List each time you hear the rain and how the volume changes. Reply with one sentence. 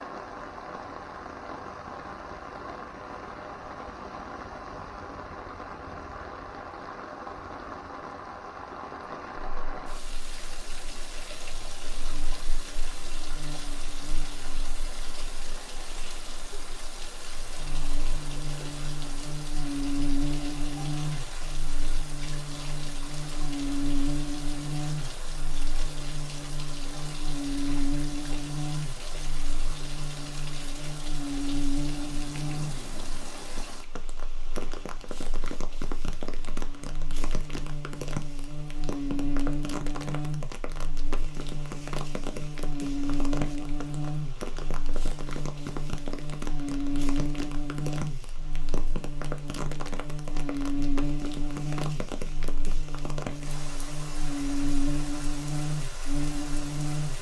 The rain can be heard from 0.0 to 57.1 s, at a steady volume.